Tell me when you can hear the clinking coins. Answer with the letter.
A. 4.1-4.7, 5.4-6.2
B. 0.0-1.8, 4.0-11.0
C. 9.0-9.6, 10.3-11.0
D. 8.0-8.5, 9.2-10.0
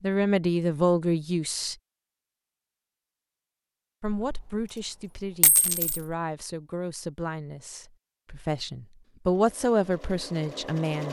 A.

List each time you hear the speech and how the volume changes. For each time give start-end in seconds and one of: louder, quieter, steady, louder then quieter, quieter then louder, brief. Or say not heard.
0.0-1.8 brief
4.0-11.0 louder.